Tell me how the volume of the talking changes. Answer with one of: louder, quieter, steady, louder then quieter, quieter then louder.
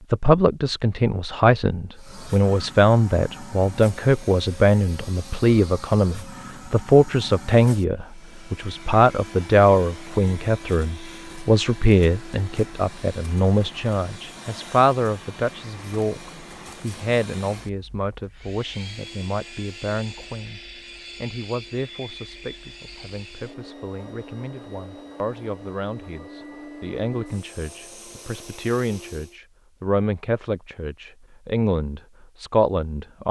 quieter then louder.